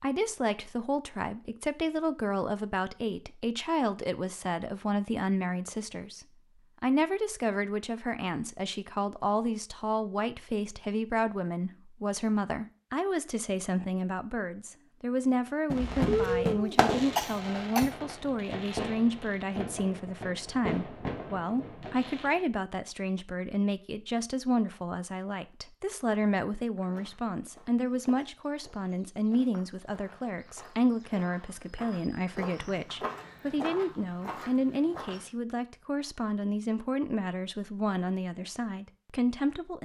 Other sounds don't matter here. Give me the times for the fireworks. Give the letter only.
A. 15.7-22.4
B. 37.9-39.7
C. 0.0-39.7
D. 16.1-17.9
A.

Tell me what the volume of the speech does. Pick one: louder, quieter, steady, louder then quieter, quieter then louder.
steady.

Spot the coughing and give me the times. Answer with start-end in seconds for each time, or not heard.
16.1-17.9.